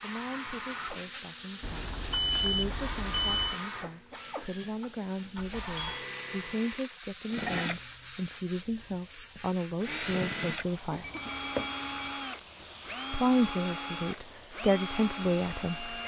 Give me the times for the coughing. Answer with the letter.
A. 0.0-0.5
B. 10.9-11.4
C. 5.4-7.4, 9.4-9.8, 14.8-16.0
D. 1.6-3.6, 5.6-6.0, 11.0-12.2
B.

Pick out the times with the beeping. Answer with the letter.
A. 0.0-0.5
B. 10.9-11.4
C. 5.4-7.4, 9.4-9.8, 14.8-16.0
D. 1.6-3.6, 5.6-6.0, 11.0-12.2
D.